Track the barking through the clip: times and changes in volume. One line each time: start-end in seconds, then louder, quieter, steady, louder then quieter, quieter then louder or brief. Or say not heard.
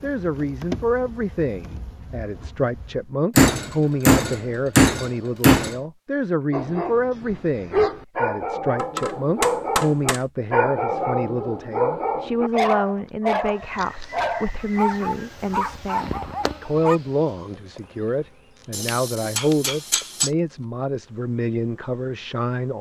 6.5-17.0 steady.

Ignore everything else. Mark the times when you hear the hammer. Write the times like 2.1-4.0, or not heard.
3.4-5.8, 8.8-10.2, 18.7-20.3.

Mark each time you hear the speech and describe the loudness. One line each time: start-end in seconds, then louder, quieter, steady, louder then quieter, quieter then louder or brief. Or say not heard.
0.0-22.7 steady.